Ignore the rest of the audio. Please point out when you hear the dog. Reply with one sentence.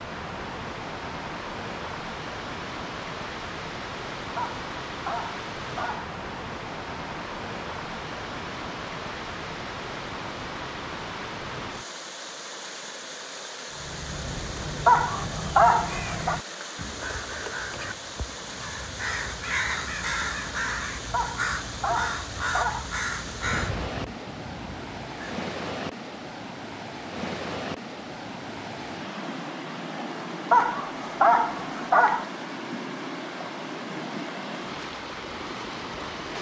The dog can be heard from 4.3 to 6.1 s, from 14.8 to 16.4 s, from 21.1 to 22.9 s and from 30.5 to 32.2 s.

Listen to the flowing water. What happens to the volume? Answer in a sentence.
The loudness of the flowing water stays about the same.